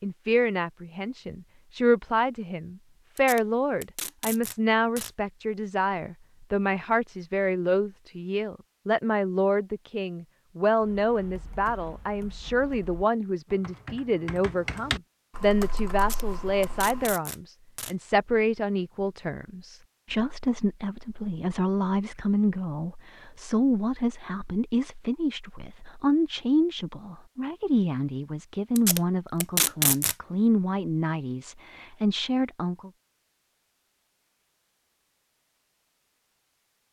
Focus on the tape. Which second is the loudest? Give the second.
30 s.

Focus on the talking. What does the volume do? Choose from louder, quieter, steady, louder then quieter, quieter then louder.
steady.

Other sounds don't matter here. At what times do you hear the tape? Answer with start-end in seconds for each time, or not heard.
3.1-5.1, 15.9-17.9, 28.8-30.1.